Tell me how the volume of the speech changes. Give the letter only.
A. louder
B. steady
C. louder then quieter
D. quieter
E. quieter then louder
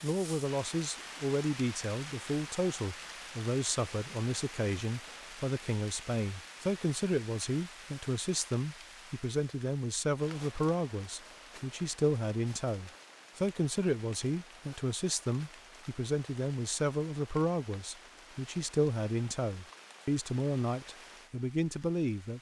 B.